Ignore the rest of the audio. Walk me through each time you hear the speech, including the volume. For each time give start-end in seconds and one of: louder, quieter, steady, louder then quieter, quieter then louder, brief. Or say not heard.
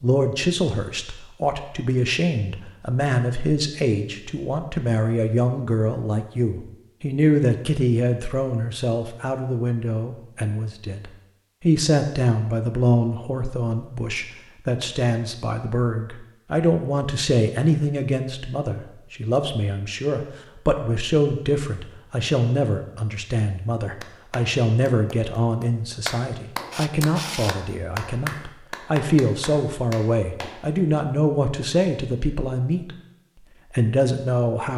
0.0-33.0 steady
33.7-34.7 brief.